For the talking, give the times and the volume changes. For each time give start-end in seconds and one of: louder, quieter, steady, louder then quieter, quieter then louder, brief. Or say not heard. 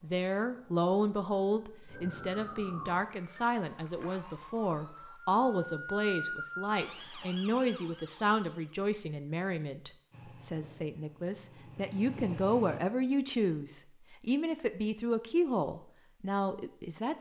0.0-17.1 steady.